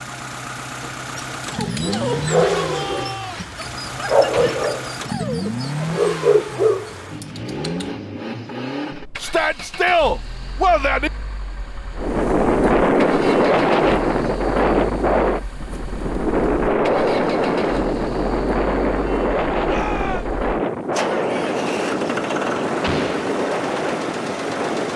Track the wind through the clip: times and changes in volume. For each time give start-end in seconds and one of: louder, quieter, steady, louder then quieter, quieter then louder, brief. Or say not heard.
11.9-24.9 quieter.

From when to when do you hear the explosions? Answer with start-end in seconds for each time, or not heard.
4.3-4.8, 22.8-23.3.